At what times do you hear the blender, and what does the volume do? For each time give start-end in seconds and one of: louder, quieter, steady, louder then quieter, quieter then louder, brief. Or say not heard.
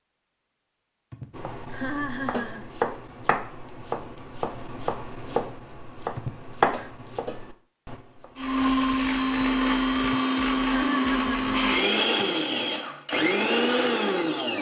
8.3-14.5 steady.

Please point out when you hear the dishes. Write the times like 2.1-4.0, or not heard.
not heard.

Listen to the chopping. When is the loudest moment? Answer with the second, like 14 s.
7 s.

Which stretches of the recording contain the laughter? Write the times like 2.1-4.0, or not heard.
1.1-2.6, 6.2-6.9, 10.0-12.2.